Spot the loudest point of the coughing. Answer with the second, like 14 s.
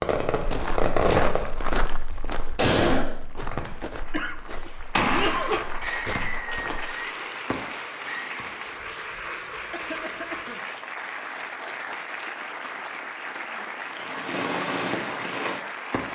5 s.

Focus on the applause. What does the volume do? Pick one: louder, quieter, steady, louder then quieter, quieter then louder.
steady.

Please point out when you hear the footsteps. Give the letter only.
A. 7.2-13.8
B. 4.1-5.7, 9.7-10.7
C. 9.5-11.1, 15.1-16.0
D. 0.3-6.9
D.